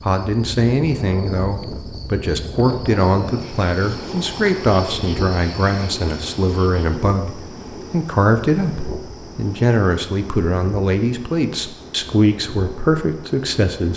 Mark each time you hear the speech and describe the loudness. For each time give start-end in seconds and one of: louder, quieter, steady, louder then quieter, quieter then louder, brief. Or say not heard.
0.0-13.9 steady.